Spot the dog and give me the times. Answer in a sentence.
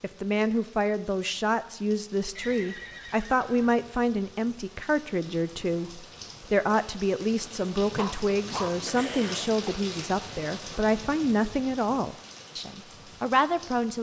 You can hear the dog from 7.9 to 9.8 s.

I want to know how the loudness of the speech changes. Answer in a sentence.
The volume of the speech stays about the same.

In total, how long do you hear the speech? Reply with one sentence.
The speech can be heard for 14 seconds in total.